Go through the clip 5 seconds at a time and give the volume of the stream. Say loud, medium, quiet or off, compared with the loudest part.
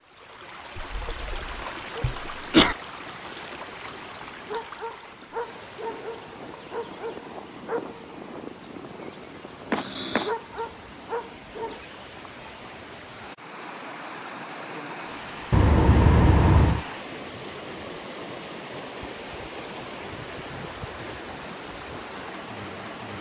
loud, medium, loud, loud, loud.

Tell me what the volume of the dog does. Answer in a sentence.
The volume of the dog goes up.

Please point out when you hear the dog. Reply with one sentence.
The dog can be heard from 1.4 to 11.8 s.